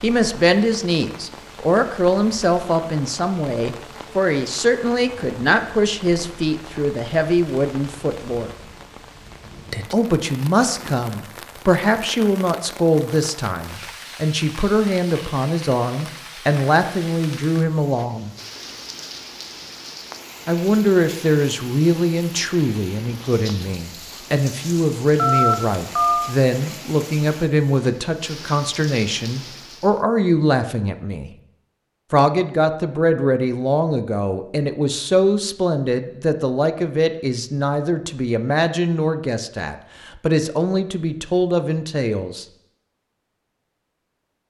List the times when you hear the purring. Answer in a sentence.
The purring can't be heard in this clip.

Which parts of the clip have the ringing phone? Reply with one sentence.
You can hear the ringing phone from 25.1 to 26.3 s.